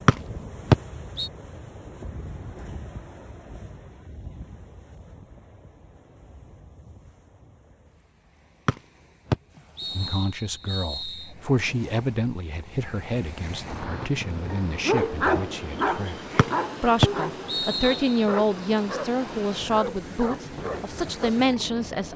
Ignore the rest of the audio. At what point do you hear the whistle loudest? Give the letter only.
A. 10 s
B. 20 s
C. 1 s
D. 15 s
C.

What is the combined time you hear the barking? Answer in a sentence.
The barking can be heard for 8 seconds in total.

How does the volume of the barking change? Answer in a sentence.
The volume of the barking goes down.